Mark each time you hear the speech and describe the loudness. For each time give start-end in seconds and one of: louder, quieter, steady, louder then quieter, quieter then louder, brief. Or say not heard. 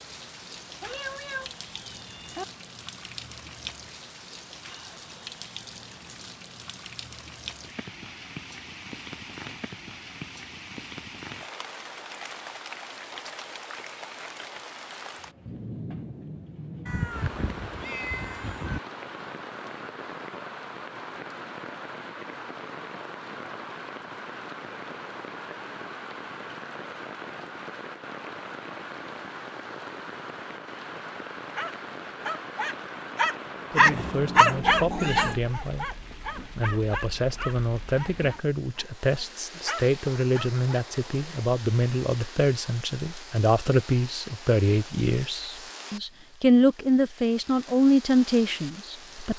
33.7-49.3 louder.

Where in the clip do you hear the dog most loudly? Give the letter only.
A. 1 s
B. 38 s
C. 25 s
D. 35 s
D.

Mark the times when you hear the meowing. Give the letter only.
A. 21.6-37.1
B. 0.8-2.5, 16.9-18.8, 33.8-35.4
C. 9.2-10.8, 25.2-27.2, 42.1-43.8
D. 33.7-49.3
B.